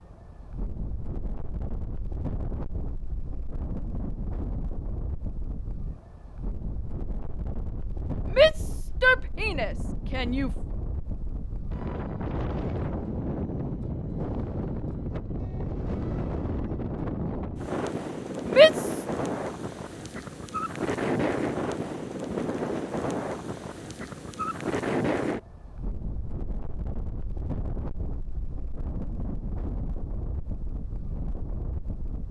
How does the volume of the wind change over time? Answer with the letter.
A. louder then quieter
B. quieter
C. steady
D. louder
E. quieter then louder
A.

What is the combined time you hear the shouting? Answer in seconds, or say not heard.
3 s.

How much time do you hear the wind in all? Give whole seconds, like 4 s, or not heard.
32 s.